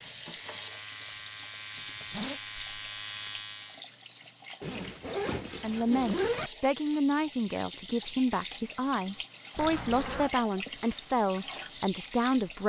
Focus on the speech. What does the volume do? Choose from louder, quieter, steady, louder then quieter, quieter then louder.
steady.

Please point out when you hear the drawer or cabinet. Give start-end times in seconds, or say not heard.
not heard.